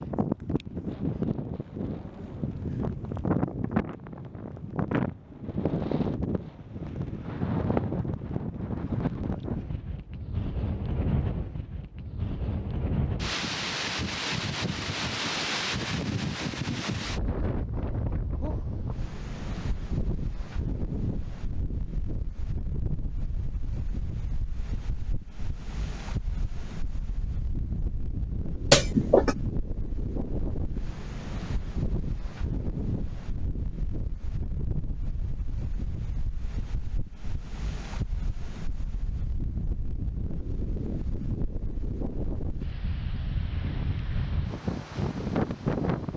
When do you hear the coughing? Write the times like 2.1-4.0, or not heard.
28.7-29.4.